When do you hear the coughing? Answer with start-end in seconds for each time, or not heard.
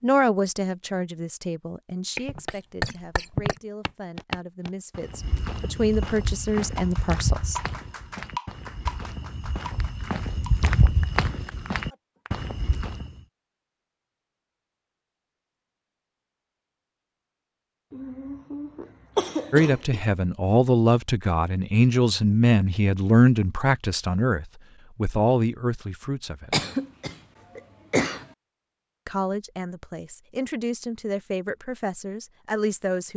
2.1-3.5, 17.9-20.1, 26.5-28.2.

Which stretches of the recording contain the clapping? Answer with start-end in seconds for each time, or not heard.
6.2-12.4.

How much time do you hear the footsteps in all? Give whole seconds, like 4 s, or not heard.
11 s.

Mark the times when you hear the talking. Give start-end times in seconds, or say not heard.
0.0-7.6, 19.5-26.6, 29.1-33.1.